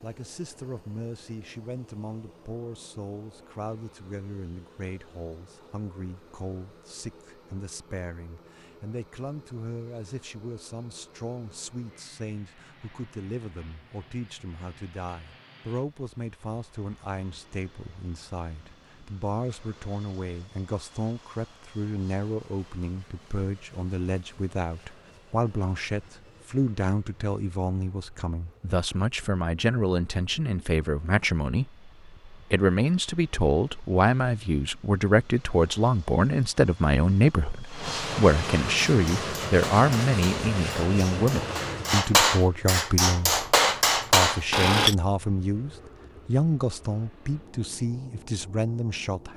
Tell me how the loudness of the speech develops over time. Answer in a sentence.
The loudness of the speech goes up.